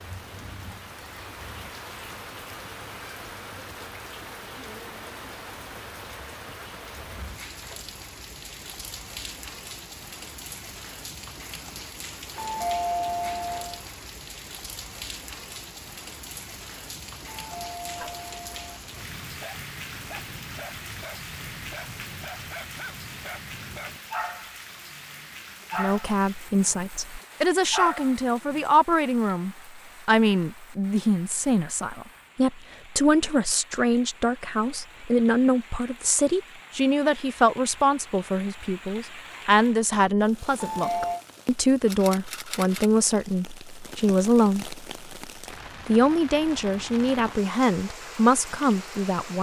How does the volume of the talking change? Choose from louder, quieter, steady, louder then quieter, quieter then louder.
steady.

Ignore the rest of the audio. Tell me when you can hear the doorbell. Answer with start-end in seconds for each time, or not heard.
12.3-13.8, 17.4-18.8, 40.5-41.2.